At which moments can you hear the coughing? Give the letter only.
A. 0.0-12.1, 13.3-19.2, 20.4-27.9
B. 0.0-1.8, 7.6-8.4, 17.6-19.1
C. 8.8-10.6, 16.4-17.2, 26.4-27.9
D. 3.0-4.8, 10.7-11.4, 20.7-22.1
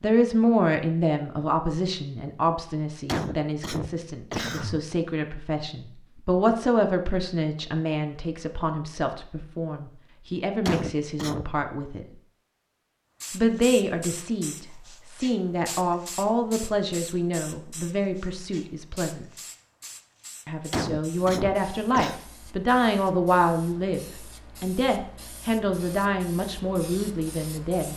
D.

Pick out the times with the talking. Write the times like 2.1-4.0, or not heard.
0.0-12.1, 13.3-19.2, 20.4-27.9.